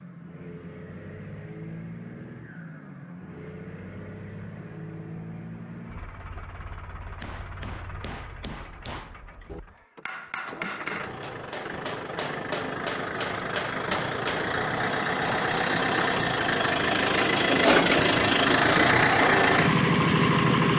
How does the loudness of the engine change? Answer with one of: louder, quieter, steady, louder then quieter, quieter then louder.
louder.